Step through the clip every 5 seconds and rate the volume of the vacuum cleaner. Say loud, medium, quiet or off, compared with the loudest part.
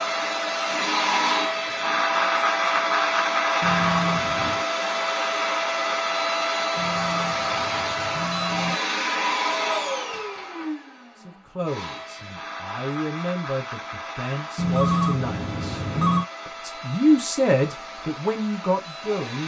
loud, loud, quiet, quiet.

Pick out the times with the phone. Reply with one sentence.
You can hear the phone from 3.6 to 4.7 s, from 6.8 to 8.8 s and from 14.6 to 16.2 s.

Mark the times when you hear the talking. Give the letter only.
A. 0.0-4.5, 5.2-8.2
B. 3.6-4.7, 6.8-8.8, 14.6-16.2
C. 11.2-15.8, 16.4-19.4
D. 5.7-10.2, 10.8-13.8
C.